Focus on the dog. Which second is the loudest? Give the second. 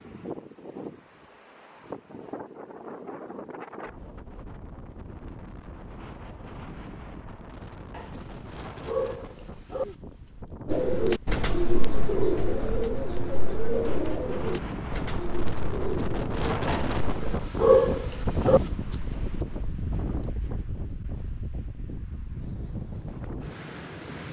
18 s.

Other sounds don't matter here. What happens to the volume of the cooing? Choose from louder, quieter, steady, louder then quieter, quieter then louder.
quieter.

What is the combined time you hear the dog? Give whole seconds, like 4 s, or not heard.
4 s.